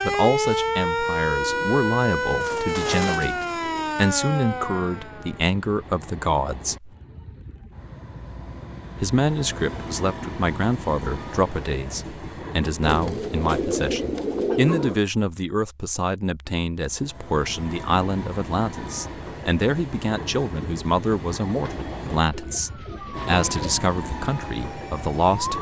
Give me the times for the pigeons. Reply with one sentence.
The pigeons can be heard from 1.4 to 3.9 s, from 12.8 to 15.0 s and from 21.6 to 23.8 s.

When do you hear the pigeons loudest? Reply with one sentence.
The volume of the pigeons peaks at 15 seconds.